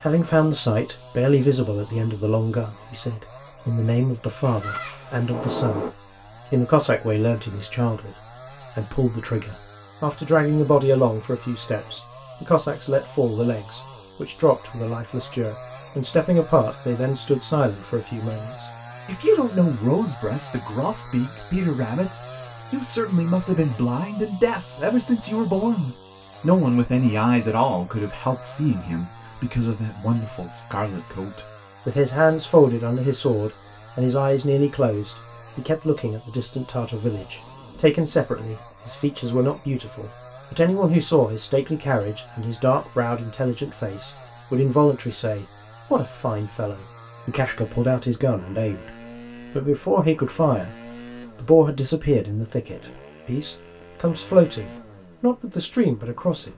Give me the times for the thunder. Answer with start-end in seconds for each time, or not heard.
4.4-5.9, 37.1-38.6.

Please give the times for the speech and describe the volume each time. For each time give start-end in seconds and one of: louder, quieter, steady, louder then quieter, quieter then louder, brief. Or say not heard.
0.0-56.5 steady.